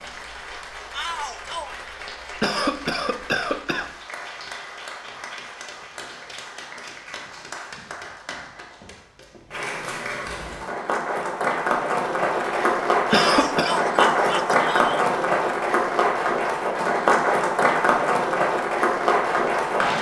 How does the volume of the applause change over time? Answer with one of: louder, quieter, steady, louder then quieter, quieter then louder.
louder.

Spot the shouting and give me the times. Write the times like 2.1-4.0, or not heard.
0.9-1.7, 13.1-15.1.